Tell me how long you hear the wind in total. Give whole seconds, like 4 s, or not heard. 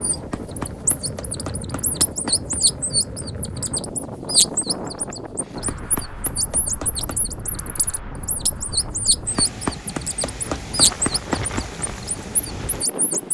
13 s.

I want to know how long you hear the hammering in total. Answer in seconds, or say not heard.
6 s.